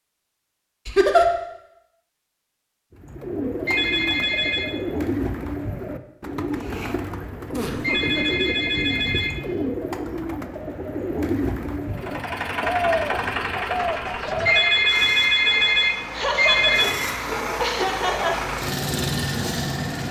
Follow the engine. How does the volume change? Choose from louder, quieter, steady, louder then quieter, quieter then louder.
quieter then louder.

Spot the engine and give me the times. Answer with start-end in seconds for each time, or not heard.
11.9-20.0.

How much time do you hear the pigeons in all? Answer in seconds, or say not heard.
12 s.